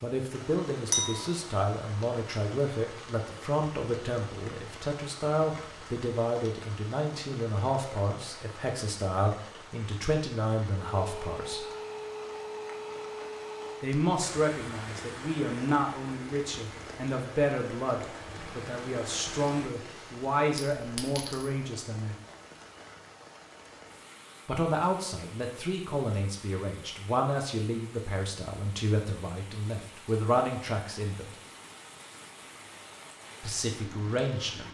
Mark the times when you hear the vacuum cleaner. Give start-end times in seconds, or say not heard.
10.8-20.2.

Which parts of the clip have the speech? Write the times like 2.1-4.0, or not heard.
0.0-11.7, 13.8-22.1, 24.4-31.3, 33.4-34.6.